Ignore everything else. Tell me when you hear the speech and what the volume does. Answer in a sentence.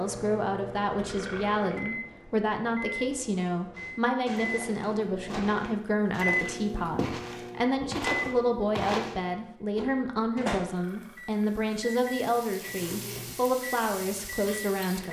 The speech can be heard from 0.0 to 15.0 s, at a steady volume.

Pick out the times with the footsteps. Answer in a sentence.
You can hear the footsteps from 3.7 to 9.2 s.